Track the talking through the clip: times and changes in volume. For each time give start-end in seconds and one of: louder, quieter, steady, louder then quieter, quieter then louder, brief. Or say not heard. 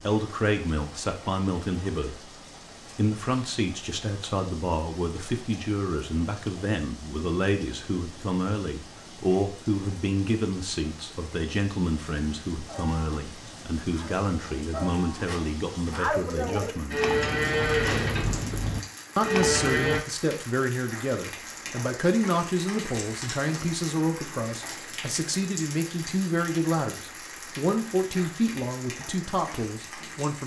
0.0-2.3 brief
3.0-16.9 steady
19.1-30.4 steady.